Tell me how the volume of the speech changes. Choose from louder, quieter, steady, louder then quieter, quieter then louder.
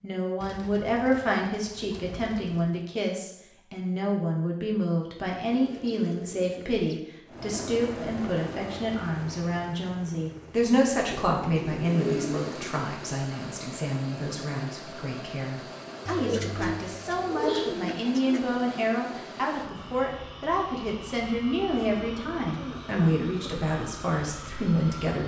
steady.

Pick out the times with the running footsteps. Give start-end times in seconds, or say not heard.
not heard.